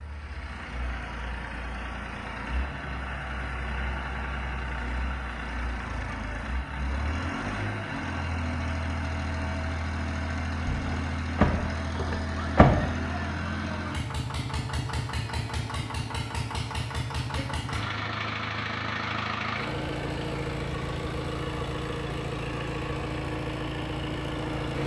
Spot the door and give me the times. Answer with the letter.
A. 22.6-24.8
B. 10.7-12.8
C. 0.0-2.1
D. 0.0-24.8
B.